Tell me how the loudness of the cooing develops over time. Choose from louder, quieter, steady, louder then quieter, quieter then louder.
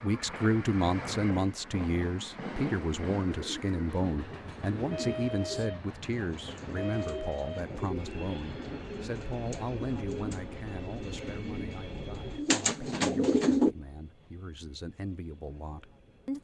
louder.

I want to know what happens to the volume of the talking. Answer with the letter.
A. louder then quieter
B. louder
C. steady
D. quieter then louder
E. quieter
E.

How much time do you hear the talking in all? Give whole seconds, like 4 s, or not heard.
16 s.